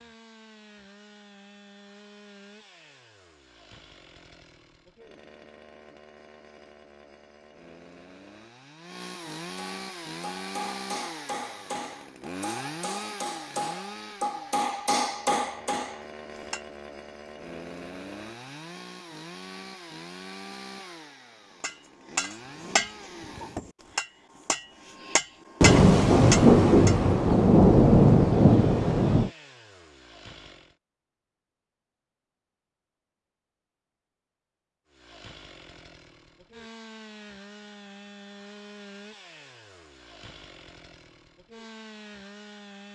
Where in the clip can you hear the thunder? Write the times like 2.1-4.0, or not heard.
25.6-29.3.